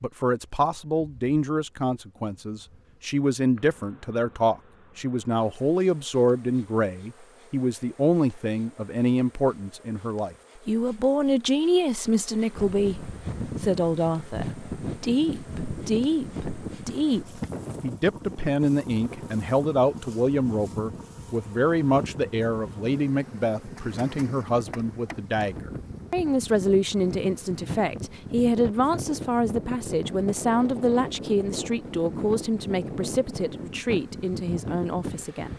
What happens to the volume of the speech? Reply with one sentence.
The volume of the speech stays about the same.